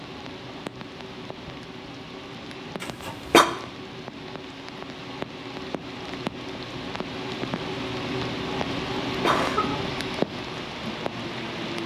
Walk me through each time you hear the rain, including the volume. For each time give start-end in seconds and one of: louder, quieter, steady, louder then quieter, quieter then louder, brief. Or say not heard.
0.0-11.8 louder.